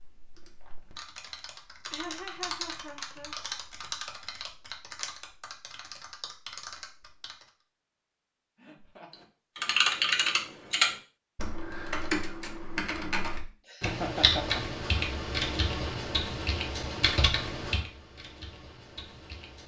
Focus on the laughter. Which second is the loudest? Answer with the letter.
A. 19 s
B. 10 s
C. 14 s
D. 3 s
C.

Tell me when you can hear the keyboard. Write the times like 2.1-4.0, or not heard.
0.0-7.5, 9.6-19.6.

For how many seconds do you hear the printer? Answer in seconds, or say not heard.
not heard.